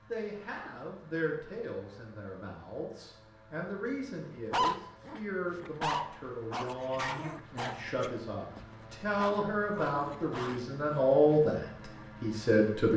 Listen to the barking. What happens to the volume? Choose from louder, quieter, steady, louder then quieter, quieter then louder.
quieter.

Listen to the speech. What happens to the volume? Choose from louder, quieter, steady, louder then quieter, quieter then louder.
louder.